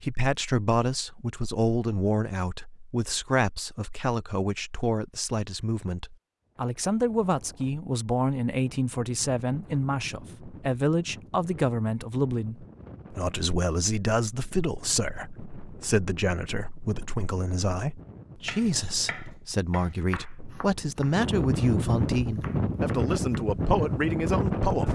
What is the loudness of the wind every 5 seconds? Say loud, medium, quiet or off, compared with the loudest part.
off, quiet, quiet, quiet, loud.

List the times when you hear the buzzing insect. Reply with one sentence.
The buzzing insect can't be heard in this clip.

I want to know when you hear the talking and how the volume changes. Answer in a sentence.
You can hear the talking from 0.0 to 24.8 s, at a steady volume.